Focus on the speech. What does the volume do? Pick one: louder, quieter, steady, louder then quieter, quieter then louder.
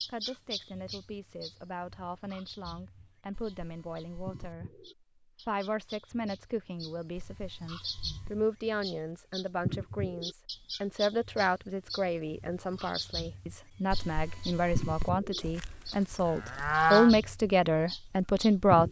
louder.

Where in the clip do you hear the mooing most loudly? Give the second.
17 s.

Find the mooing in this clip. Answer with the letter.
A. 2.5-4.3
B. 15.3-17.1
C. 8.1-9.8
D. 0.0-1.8
B.